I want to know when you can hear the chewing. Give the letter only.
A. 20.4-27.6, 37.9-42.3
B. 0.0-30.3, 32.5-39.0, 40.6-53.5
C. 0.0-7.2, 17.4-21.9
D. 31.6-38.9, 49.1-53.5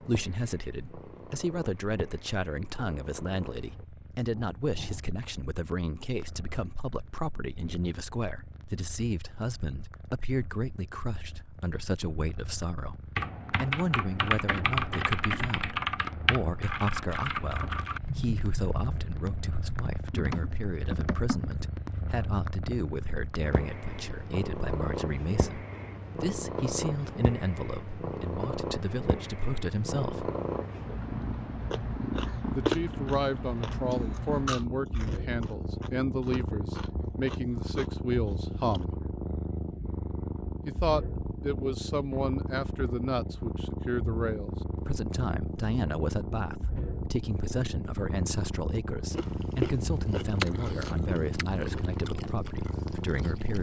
D.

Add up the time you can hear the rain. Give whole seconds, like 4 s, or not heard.
not heard.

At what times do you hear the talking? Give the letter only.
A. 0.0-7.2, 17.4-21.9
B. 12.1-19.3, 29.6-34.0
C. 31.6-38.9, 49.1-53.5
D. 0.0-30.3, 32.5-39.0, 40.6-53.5
D.